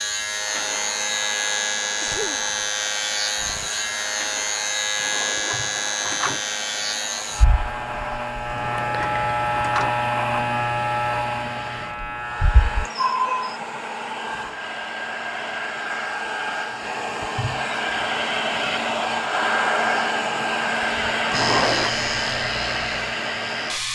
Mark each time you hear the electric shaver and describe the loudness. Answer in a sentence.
You can hear the electric shaver from 0.0 to 12.9 s, at a steady volume; and briefly from 21.3 to 23.9 s.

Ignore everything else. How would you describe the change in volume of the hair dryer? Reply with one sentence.
The loudness of the hair dryer goes up.